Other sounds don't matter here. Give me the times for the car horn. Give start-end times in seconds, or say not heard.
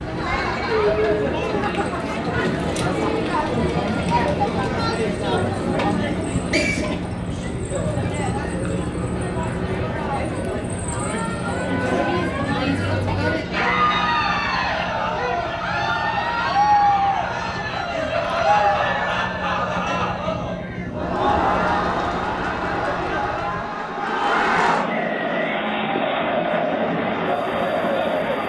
not heard.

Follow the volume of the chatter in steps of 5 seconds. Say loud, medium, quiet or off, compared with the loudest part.
loud, medium, loud, loud, loud, loud.